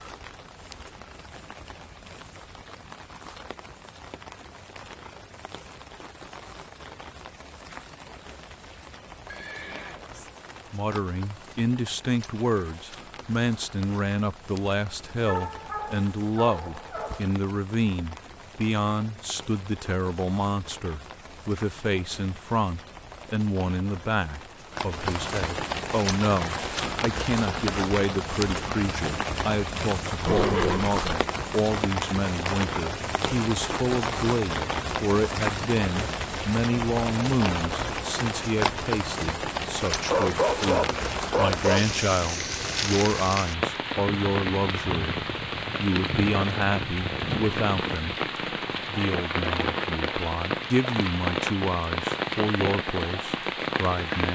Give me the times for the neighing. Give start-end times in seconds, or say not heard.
9.2-10.1, 30.2-31.0.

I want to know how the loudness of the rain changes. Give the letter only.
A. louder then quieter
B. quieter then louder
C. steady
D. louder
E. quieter
D.